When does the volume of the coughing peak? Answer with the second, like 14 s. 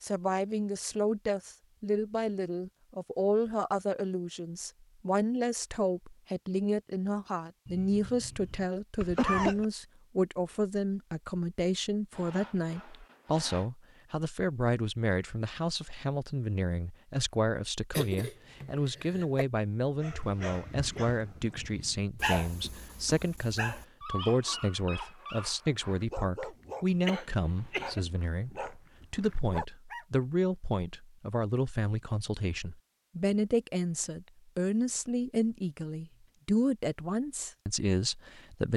9 s.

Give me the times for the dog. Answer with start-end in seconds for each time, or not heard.
20.0-30.1.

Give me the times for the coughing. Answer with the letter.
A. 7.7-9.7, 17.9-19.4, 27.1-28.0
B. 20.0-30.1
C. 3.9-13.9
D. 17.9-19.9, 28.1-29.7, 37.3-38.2
A.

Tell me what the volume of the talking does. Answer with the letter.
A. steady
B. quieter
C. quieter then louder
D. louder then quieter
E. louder
A.